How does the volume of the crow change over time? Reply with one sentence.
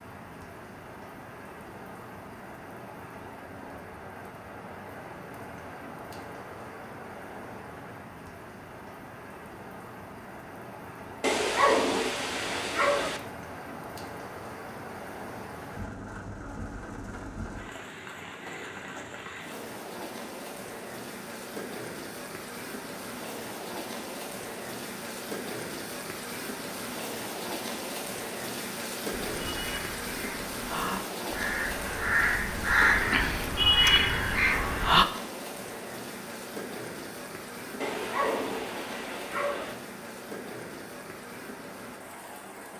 The volume of the crow goes up.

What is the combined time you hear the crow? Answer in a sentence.
You can hear the crow for 6 seconds altogether.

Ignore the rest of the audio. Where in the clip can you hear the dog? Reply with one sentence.
You can hear the dog from 11.2 to 13.2 s and from 37.8 to 39.8 s.